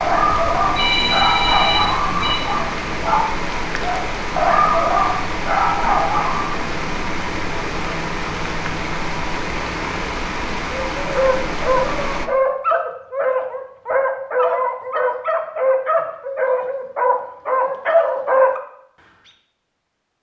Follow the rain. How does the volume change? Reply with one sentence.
The loudness of the rain stays about the same.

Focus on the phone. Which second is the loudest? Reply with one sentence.
The volume of the phone peaks at 1 second.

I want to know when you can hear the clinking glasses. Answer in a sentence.
The clinking glasses can't be heard in this clip.